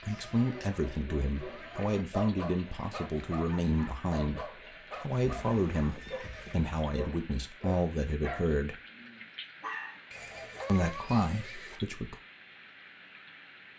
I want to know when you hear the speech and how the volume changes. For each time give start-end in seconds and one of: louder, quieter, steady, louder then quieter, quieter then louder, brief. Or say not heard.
0.0-8.8 steady
10.7-12.2 brief.